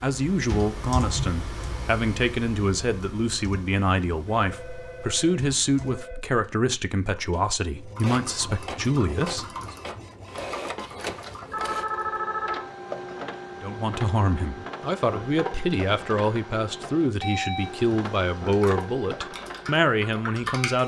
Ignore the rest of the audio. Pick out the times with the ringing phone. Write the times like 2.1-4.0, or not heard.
4.3-6.2, 11.5-12.7.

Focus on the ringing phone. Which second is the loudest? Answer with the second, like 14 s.
12 s.